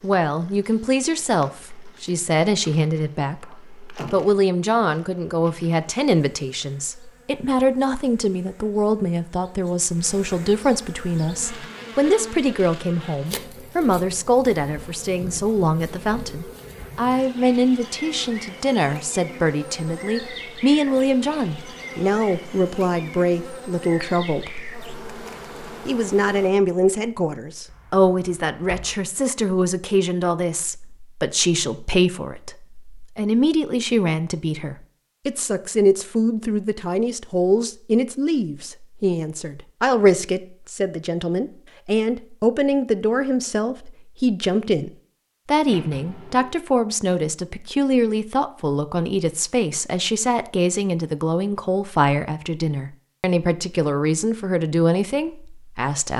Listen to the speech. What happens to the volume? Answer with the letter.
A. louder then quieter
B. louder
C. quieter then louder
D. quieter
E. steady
E.